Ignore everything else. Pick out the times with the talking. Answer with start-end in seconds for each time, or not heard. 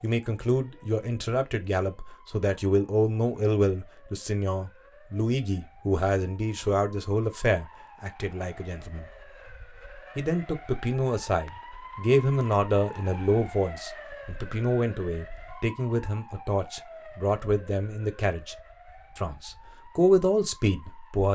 0.0-9.1, 10.2-18.6, 19.1-21.3.